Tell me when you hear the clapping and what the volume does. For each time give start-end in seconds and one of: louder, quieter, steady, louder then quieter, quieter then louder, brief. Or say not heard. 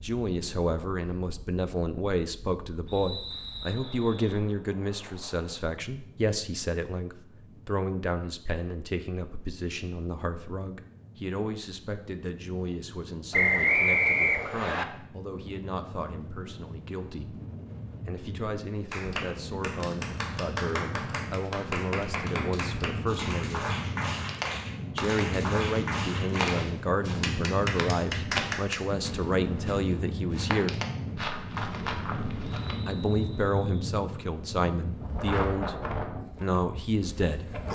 18.9-28.8 steady.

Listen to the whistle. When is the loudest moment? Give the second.
14 s.